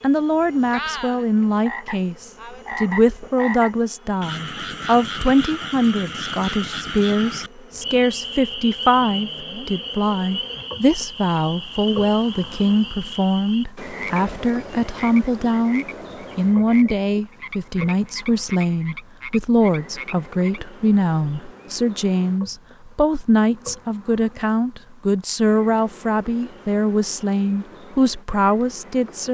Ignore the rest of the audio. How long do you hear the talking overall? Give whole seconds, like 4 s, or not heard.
29 s.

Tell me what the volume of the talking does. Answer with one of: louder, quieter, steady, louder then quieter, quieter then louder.
steady.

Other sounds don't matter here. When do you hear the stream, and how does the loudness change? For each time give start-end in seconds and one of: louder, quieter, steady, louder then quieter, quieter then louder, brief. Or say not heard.
not heard.